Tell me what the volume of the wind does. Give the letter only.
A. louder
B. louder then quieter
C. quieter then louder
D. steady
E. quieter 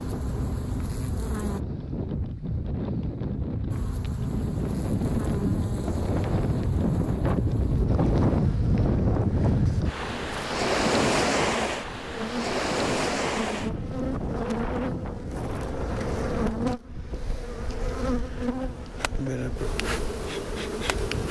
B.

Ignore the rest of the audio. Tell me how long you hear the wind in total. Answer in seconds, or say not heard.
21 s.